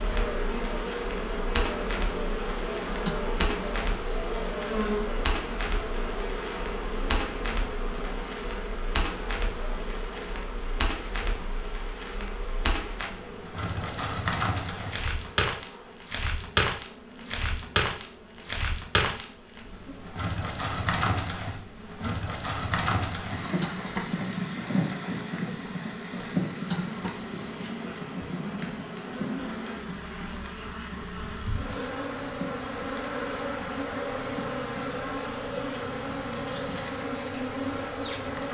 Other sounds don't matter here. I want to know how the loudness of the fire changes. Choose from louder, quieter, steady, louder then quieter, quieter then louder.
louder then quieter.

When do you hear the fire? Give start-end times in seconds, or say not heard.
0.0-38.4.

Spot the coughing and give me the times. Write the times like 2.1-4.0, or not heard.
3.0-3.6, 23.6-24.1, 26.7-27.2.